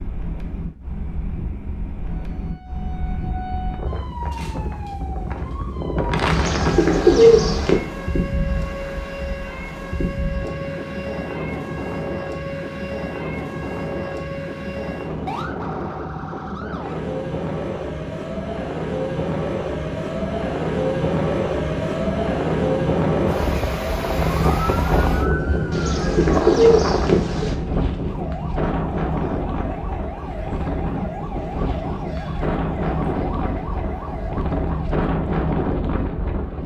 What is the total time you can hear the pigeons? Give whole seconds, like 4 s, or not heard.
3 s.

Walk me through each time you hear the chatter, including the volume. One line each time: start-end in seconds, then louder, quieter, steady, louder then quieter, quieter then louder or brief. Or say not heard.
not heard.